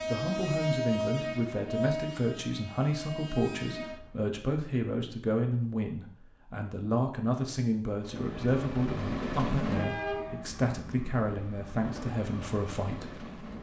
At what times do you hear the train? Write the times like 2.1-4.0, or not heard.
0.0-4.3, 7.9-13.5.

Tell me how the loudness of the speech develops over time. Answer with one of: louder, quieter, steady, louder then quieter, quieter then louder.
steady.